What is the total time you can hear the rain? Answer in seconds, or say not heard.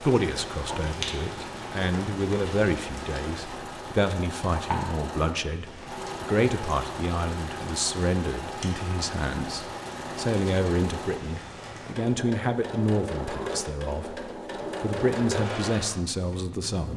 12 s.